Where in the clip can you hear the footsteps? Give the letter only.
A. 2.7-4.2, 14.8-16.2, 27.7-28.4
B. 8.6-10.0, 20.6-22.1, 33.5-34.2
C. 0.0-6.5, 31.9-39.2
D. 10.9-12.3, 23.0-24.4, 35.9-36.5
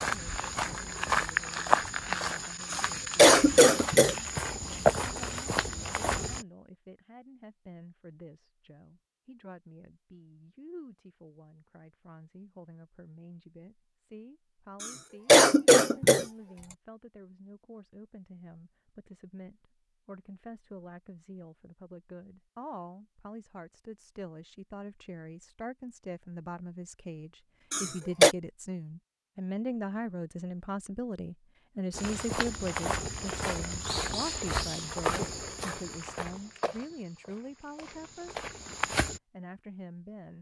C.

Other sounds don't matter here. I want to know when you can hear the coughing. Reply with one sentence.
The coughing can be heard from 2.7 to 4.2 s, from 14.8 to 16.2 s and from 27.7 to 28.4 s.